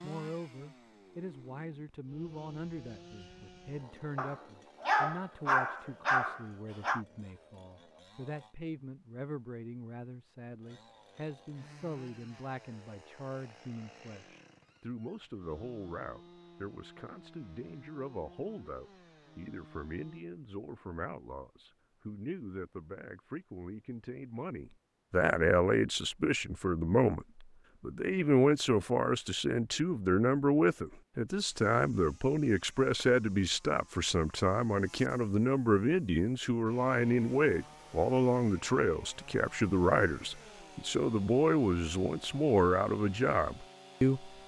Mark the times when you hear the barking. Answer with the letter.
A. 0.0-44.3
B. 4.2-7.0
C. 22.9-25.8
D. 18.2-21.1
B.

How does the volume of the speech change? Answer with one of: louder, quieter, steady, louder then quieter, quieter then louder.
louder.